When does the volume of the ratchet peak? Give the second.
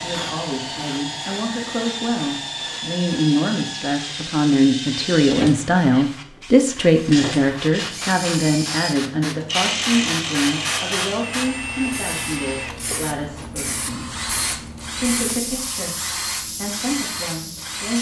10 s.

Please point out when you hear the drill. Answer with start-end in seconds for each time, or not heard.
0.0-17.9.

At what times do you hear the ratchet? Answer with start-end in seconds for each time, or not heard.
9.4-11.2.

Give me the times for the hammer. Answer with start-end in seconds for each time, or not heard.
not heard.